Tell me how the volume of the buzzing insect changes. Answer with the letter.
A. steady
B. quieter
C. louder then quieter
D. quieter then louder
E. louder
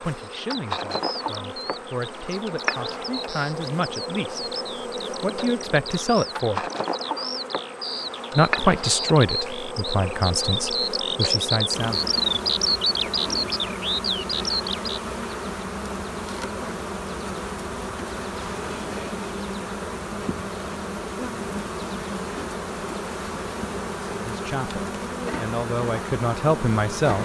A.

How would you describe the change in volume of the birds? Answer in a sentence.
The loudness of the birds goes up.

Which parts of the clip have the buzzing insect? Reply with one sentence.
The buzzing insect can be heard from 0.0 to 27.2 s.